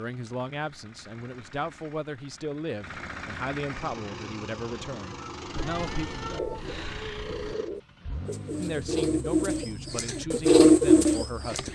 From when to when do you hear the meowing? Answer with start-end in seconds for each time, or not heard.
5.5-7.5.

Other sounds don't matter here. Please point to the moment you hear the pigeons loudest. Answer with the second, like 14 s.
11 s.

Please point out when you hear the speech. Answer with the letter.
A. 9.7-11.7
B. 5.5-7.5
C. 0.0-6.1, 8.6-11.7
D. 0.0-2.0
C.